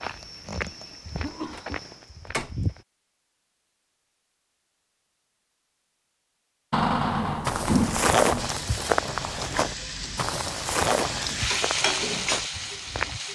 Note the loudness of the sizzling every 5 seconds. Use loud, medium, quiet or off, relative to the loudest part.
off, medium, loud.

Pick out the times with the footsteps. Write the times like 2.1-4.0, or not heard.
0.0-2.9, 7.5-13.2.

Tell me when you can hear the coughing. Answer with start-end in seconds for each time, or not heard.
0.0-1.8.